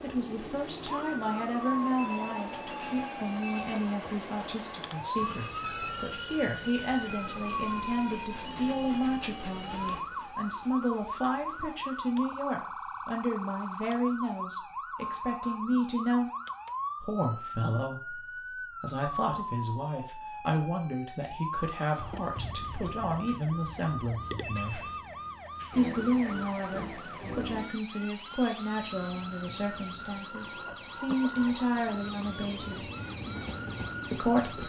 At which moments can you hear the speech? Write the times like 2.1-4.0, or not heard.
0.0-16.3, 17.0-24.8, 25.7-32.9, 34.1-34.6.